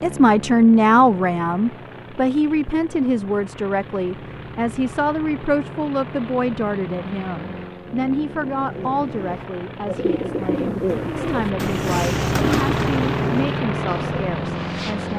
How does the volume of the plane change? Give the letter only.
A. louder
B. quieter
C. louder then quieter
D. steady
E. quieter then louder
A.